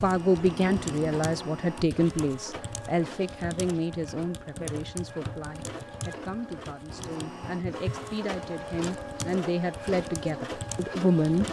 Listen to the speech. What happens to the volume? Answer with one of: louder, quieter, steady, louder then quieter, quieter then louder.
quieter then louder.